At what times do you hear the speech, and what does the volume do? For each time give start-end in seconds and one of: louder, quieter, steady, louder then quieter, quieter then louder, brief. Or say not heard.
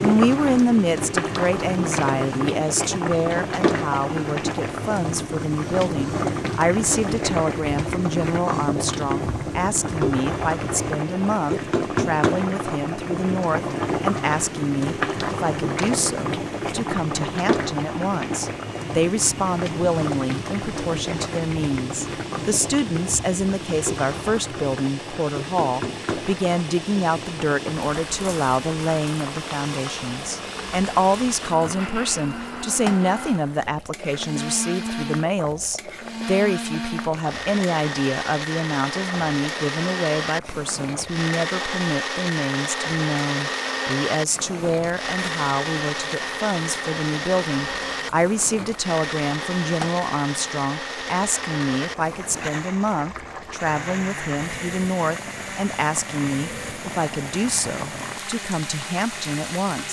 0.0-59.8 steady.